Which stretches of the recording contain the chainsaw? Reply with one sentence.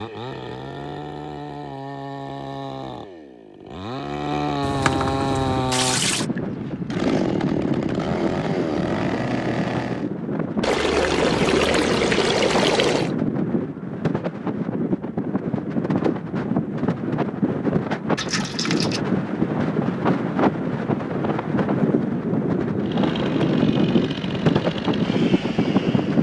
The chainsaw can be heard from 0.0 to 10.1 s and from 22.8 to 26.1 s.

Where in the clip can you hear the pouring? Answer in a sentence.
The pouring can be heard from 4.6 to 6.2 s, from 10.6 to 13.2 s and from 18.1 to 19.0 s.